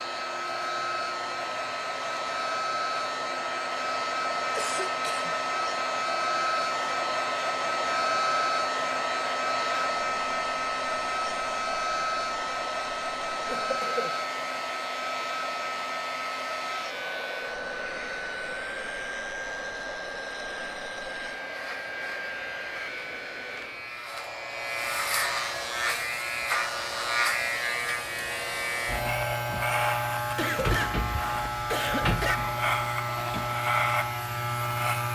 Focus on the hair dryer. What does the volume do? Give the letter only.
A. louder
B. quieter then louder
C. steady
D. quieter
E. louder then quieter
D.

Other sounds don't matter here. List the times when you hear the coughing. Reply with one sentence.
You can hear the coughing from 4.5 to 5.3 s, from 13.4 to 14.2 s and from 30.4 to 32.4 s.